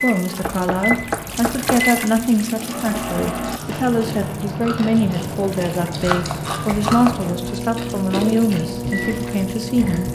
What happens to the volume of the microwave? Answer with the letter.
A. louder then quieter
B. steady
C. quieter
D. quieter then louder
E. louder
B.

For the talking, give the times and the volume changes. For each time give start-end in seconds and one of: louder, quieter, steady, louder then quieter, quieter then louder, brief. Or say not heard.
0.0-10.1 steady.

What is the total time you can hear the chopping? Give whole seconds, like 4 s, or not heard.
3 s.